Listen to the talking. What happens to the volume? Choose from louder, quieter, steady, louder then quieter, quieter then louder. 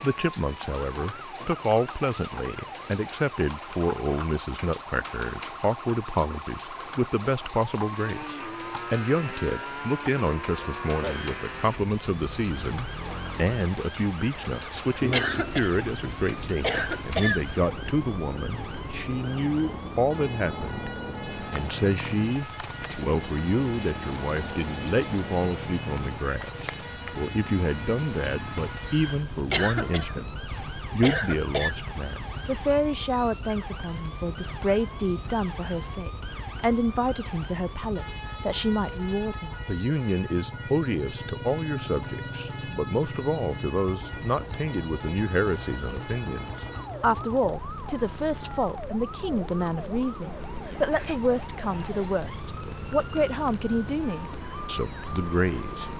steady.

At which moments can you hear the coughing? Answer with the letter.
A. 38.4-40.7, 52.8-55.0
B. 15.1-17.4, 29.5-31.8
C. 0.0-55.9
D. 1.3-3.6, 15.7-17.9
B.